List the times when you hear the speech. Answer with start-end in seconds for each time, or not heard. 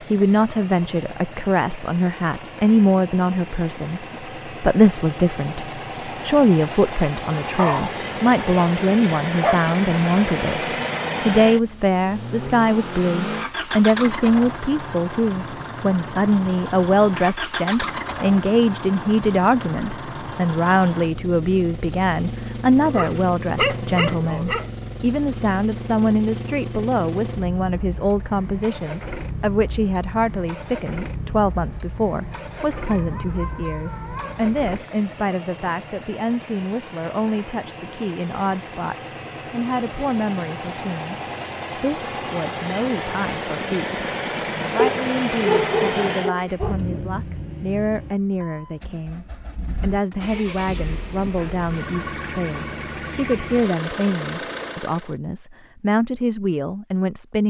0.1-44.0, 44.7-57.4.